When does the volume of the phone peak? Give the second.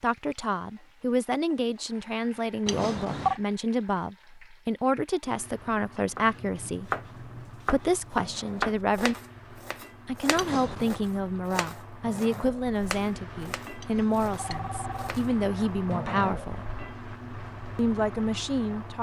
3 s.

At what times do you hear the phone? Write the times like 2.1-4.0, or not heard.
2.6-3.4, 10.3-11.0, 13.8-14.9.